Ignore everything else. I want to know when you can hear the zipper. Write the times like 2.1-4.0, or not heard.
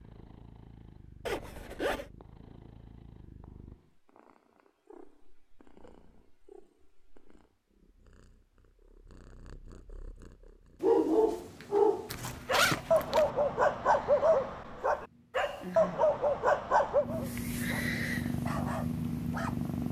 1.2-2.1, 12.1-13.3.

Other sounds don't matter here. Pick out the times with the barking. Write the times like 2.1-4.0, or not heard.
10.8-19.6.